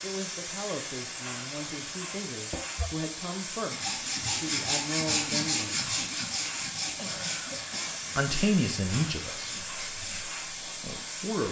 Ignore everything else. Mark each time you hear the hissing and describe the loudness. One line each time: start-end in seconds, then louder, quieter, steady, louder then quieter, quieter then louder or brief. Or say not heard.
0.0-11.4 steady.